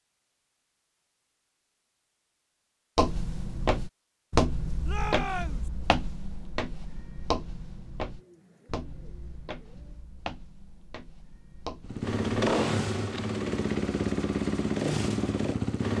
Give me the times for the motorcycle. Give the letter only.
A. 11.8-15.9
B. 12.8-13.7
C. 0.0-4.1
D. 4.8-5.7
A.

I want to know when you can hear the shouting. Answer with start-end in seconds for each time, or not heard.
4.8-5.7.